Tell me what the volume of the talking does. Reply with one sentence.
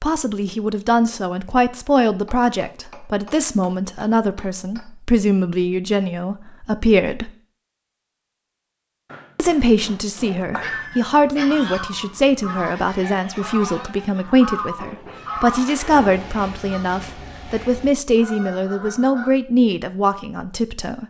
The volume of the talking stays about the same.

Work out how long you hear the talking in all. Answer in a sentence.
The talking can be heard for 19 seconds in total.